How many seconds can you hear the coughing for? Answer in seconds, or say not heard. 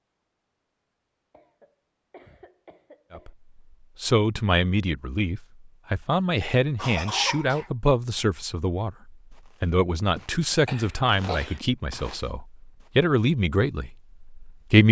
4 s.